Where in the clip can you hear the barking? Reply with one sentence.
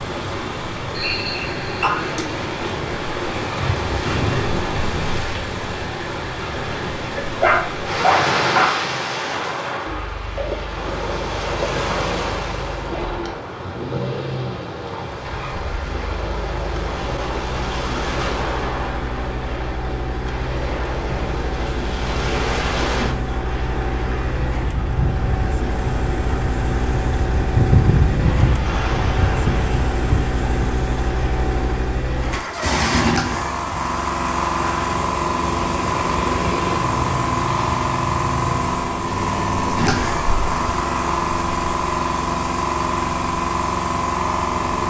The barking can be heard from 7.4 to 8.7 s.